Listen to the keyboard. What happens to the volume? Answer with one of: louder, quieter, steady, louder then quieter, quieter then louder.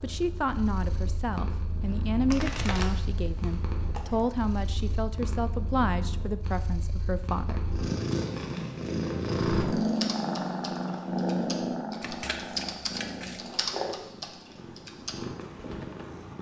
louder then quieter.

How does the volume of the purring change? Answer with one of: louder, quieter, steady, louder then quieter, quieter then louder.
louder then quieter.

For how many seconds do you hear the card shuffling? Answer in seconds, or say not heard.
4 s.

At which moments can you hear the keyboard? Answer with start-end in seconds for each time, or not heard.
9.8-16.1.